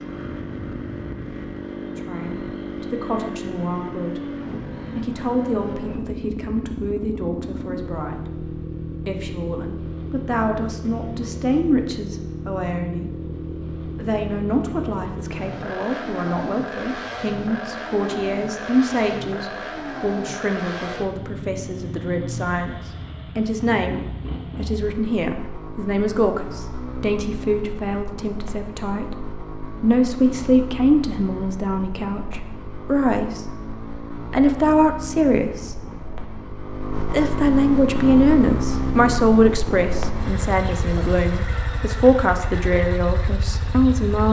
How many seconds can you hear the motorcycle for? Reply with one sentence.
You can hear the motorcycle for 44 seconds altogether.